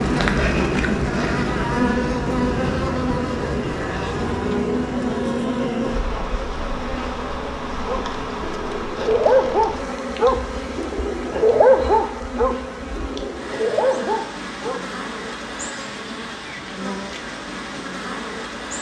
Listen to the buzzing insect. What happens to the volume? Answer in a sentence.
The loudness of the buzzing insect goes down.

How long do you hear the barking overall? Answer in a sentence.
The barking can be heard for 7 seconds in total.